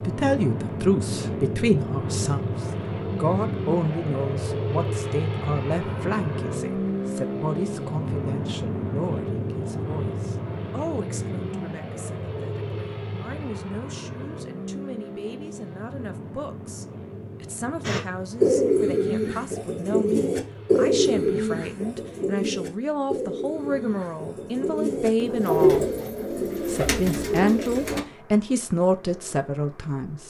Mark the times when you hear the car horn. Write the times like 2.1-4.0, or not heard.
not heard.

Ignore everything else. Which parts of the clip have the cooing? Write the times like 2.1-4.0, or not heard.
17.9-28.0.